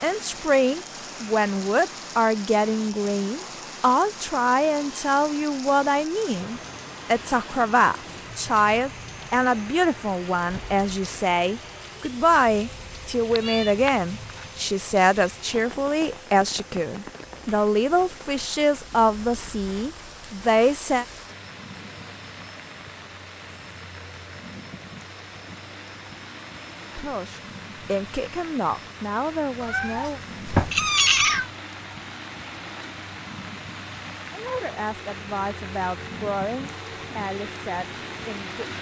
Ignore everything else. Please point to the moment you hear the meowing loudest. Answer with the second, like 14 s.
31 s.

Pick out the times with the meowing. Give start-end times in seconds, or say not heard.
13.3-14.5, 29.6-31.5.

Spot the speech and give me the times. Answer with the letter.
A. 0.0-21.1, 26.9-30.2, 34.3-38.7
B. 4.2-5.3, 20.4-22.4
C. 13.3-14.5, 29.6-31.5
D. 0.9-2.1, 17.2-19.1
A.